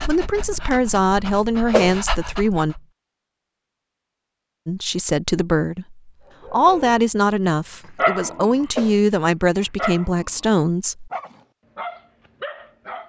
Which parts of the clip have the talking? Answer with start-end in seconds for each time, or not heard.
0.1-2.8, 4.7-11.1.